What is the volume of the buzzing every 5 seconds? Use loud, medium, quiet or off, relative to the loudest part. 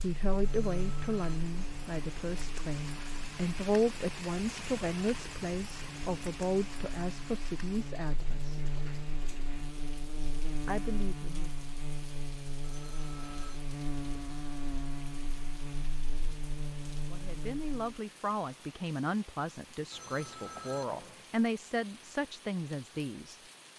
loud, loud, loud, loud, off.